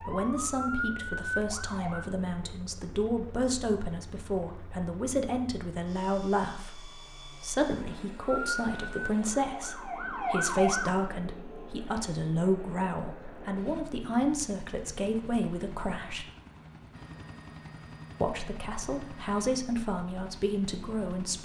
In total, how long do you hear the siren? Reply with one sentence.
You can hear the siren for 5 seconds altogether.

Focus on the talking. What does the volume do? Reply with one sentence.
The volume of the talking stays about the same.